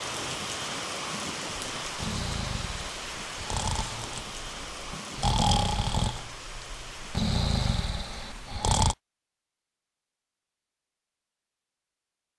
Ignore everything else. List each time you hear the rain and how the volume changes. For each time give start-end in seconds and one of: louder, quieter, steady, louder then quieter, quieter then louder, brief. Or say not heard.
0.0-9.0 quieter.